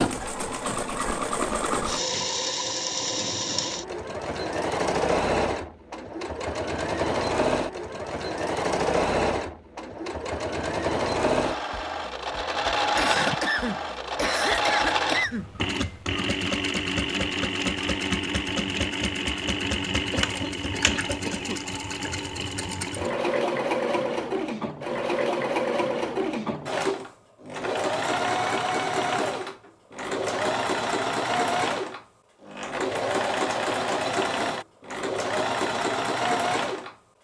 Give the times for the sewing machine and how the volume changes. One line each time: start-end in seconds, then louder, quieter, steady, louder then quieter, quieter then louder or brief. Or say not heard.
0.0-37.0 steady.